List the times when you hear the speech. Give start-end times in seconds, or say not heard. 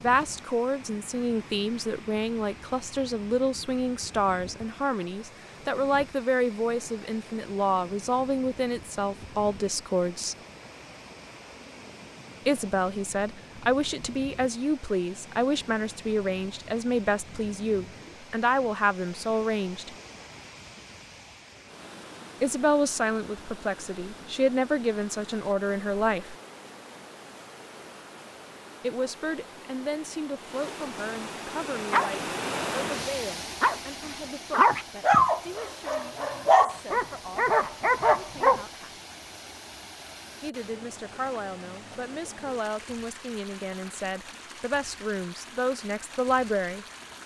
0.0-10.3, 12.4-19.9, 22.4-26.4, 28.8-39.0, 40.4-46.9.